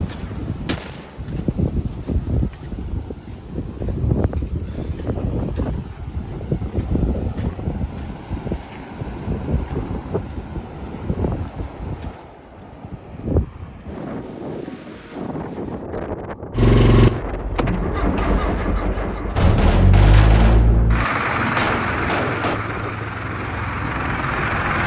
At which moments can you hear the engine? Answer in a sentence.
The engine can be heard from 16.5 to 24.8 s.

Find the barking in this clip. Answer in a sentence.
You can't hear the barking here.